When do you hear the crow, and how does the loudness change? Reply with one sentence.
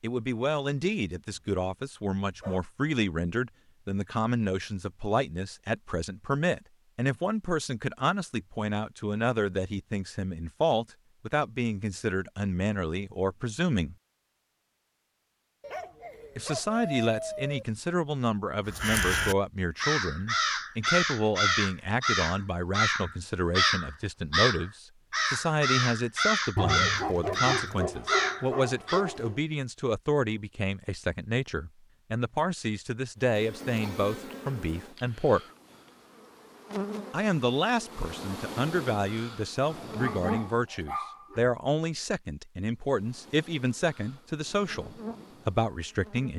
The crow can be heard from 18.6 to 29.0 s, at a steady volume.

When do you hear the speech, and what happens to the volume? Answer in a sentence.
You can hear the speech from 0.0 to 13.9 s, at a steady volume; from 16.4 to 35.4 s, at a steady volume; and from 37.1 to 46.3 s, at a steady volume.